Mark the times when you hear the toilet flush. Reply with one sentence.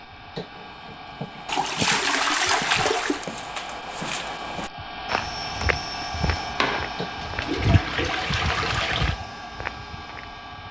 You can hear the toilet flush from 1.4 to 3.2 s and from 6.5 to 9.2 s.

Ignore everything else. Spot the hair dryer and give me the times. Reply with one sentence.
You can hear the hair dryer from 0.0 to 10.6 s.